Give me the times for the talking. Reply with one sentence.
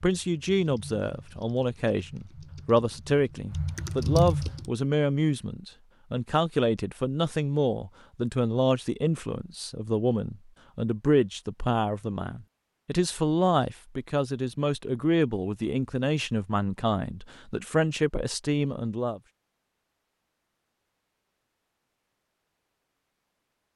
The talking can be heard from 0.0 to 19.2 s.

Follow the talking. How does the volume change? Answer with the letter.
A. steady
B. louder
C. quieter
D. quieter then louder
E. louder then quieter
A.